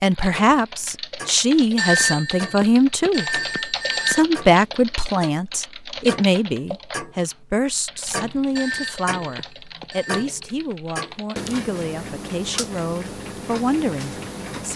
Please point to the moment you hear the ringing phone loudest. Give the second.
2 s.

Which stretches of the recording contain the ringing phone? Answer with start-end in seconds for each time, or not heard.
1.8-4.2, 8.6-10.3.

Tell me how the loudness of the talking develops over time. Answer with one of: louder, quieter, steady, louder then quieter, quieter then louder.
quieter.